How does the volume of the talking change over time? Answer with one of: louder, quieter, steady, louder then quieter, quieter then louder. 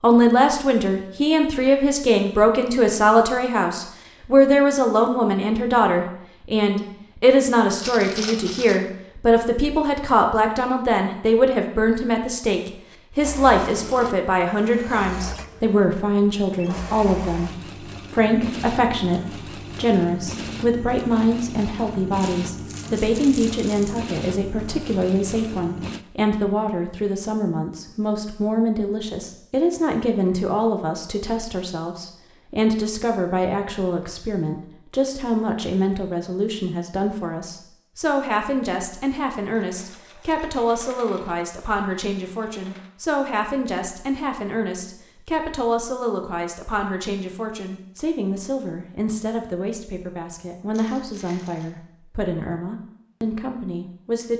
quieter.